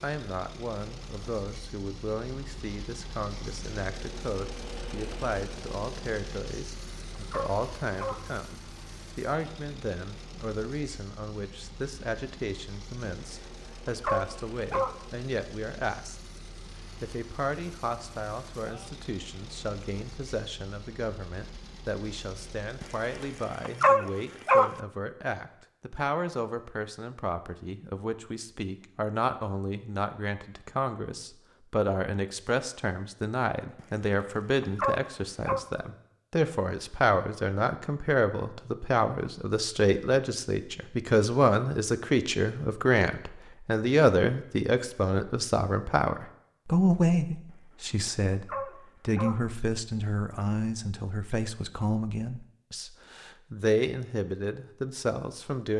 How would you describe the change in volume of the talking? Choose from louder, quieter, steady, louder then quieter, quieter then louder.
louder.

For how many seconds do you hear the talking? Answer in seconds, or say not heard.
55 s.